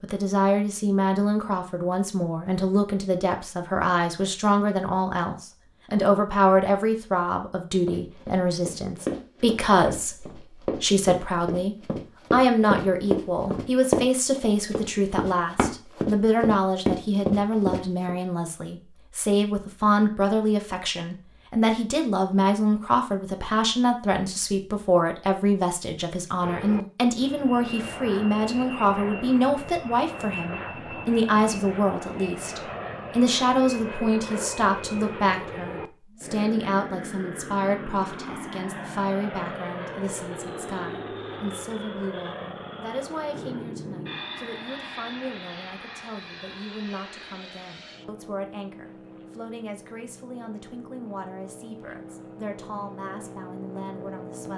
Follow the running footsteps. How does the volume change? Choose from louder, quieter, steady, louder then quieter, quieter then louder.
louder.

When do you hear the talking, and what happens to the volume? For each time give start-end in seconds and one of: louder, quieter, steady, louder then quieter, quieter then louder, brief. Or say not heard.
0.0-54.5 quieter.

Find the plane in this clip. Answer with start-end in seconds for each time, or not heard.
26.4-54.5.